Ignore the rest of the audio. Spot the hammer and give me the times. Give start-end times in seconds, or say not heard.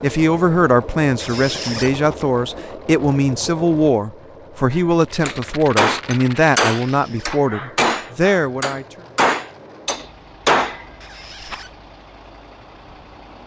4.7-10.8.